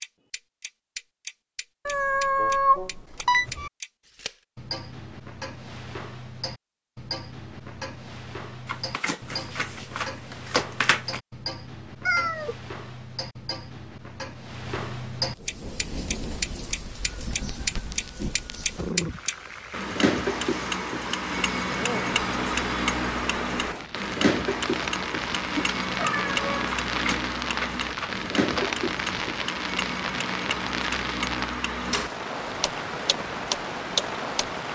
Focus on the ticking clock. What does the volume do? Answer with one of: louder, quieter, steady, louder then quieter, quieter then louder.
louder.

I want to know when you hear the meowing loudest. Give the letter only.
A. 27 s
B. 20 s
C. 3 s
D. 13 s
C.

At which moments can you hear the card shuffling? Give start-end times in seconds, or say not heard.
8.7-11.2, 26.8-28.6.